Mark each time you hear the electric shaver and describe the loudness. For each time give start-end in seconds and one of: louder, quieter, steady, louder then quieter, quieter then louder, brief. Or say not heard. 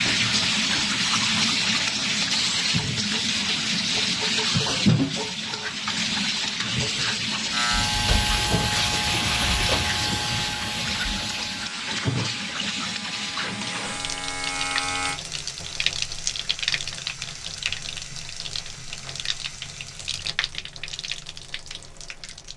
7.5-15.2 quieter then louder.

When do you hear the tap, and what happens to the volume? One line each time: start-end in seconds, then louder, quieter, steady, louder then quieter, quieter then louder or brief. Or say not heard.
0.0-22.5 quieter.